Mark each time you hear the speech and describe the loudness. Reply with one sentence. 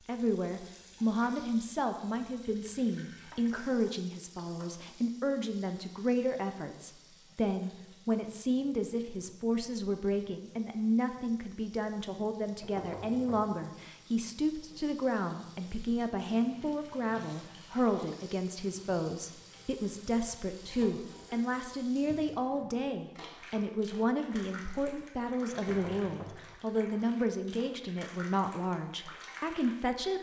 The speech can be heard from 0.1 to 30.1 s, at a steady volume.